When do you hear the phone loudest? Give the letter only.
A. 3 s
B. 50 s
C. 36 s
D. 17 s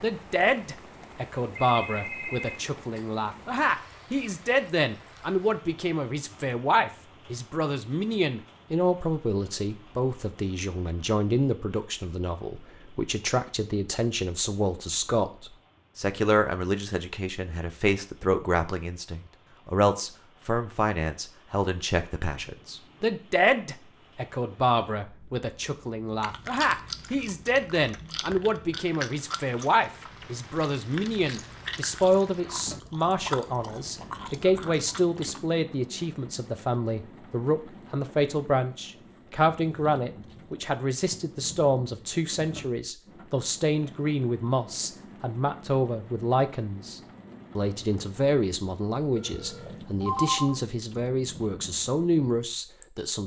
B.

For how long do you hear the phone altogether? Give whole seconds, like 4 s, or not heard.
3 s.